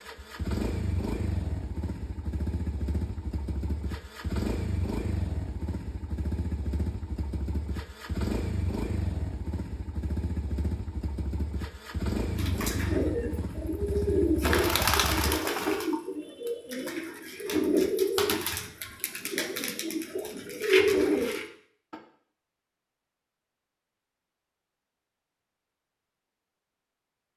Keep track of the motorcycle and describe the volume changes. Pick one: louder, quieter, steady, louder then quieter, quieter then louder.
steady.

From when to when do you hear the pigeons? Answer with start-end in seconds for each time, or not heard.
12.3-21.9.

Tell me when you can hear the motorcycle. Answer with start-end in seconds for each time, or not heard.
0.0-15.4.